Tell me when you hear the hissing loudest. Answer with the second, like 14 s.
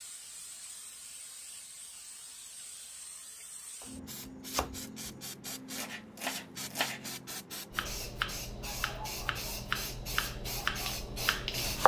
11 s.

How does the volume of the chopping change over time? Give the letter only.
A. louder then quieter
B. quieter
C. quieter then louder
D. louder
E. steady
D.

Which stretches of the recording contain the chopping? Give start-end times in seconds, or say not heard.
3.8-7.1, 7.8-11.8.